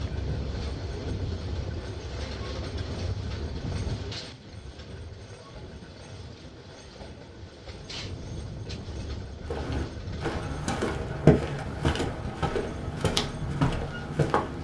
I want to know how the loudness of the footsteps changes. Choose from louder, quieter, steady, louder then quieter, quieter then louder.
louder then quieter.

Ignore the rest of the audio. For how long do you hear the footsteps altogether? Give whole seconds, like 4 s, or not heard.
5 s.